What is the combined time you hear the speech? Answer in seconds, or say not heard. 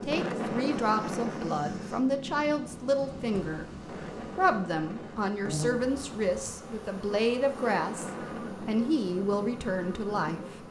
10 s.